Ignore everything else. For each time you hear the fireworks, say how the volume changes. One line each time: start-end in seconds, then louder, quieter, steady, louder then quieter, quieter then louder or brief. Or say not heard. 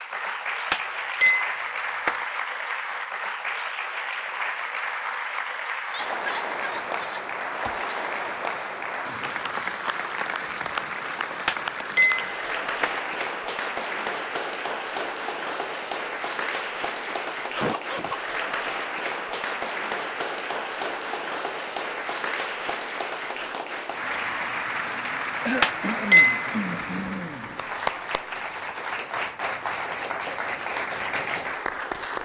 not heard.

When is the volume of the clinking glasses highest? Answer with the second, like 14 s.
26 s.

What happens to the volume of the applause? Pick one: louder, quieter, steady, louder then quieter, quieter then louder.
steady.